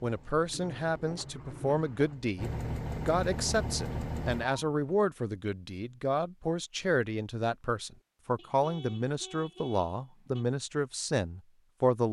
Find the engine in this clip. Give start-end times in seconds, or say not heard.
0.0-4.5.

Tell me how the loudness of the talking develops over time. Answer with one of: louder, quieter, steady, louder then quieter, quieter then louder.
steady.